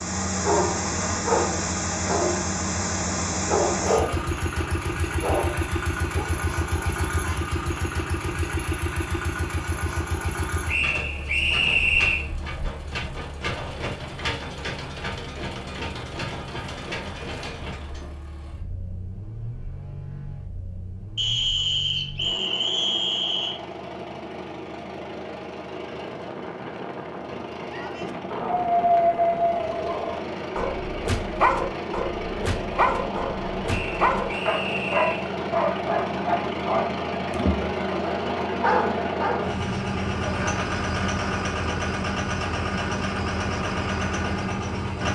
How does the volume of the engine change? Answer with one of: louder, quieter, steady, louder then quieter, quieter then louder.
quieter then louder.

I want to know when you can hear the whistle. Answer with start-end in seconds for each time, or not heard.
10.7-12.2, 21.1-23.6, 33.6-35.3.